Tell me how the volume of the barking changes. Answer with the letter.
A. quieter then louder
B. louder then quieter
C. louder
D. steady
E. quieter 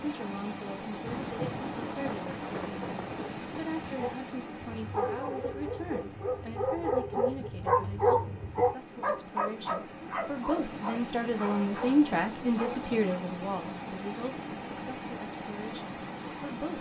B.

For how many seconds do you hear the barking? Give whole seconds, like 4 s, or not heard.
9 s.